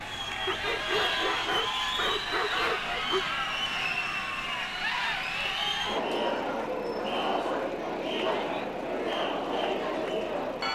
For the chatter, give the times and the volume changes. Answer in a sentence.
You can hear the chatter from 0.0 to 10.6 s, at a steady volume.